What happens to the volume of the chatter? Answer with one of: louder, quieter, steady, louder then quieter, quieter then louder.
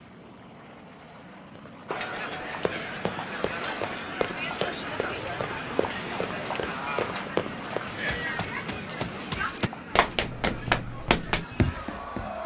quieter.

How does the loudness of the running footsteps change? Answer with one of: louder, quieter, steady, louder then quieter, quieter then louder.
louder.